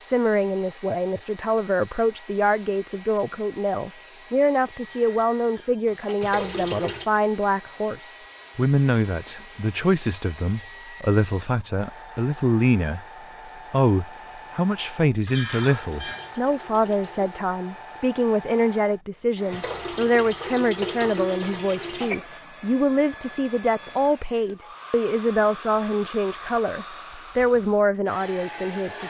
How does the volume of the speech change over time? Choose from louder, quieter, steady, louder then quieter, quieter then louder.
steady.